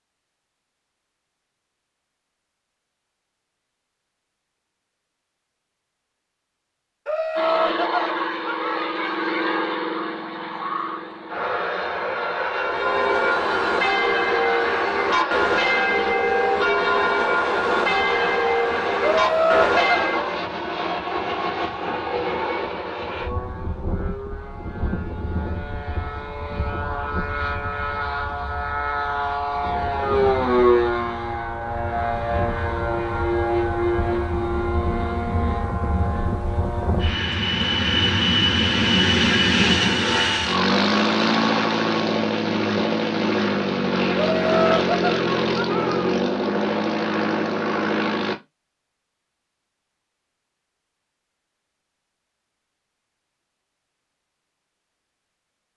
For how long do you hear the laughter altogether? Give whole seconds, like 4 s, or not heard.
6 s.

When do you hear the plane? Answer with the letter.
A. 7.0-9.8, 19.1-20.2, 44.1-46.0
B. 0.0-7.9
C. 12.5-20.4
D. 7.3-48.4
D.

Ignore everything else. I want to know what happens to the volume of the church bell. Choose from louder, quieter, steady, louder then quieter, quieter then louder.
steady.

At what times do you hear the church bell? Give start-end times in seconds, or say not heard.
12.5-20.4.